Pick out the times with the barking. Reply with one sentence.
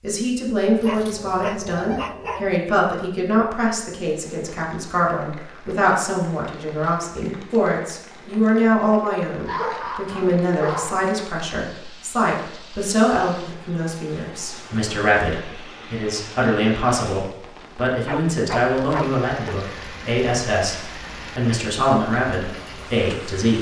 The barking can be heard from 0.8 to 2.6 s, from 9.4 to 11.1 s and from 18.1 to 19.6 s.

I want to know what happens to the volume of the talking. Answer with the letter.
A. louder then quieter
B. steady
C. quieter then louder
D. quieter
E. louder
B.